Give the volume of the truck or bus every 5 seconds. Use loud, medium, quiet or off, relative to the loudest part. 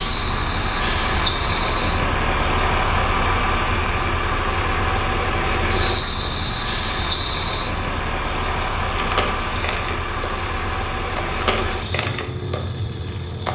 loud, loud, medium.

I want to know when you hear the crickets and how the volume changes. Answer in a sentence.
The crickets can be heard from 0.0 to 13.5 s, getting louder.